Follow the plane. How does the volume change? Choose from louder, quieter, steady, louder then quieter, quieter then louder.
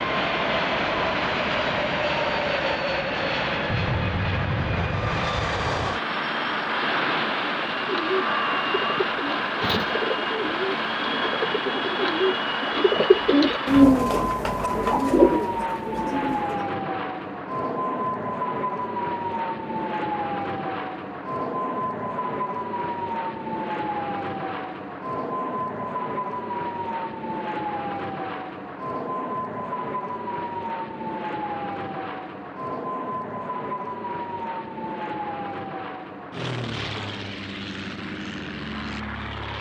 quieter.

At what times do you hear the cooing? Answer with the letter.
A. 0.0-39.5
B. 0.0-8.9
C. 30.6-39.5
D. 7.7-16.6
D.